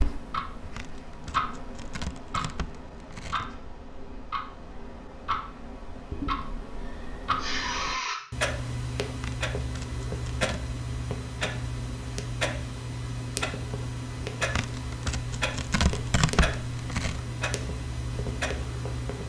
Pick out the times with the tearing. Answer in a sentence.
The tearing can be heard from 0.8 to 3.5 s, from 9.2 to 10.7 s and from 14.6 to 17.2 s.